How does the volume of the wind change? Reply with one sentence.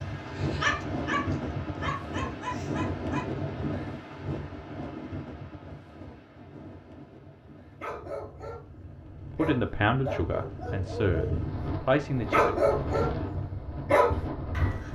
The loudness of the wind goes down, then up.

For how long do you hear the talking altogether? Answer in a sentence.
You can hear the talking for 3 seconds altogether.